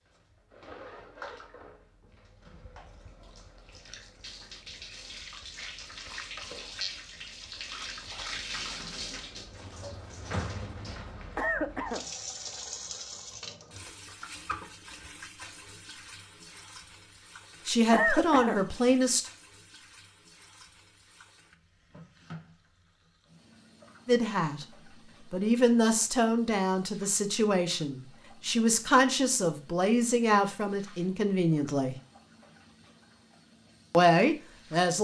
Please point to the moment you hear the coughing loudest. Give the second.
18 s.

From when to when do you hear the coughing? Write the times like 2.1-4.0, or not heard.
11.3-12.1, 17.9-18.6.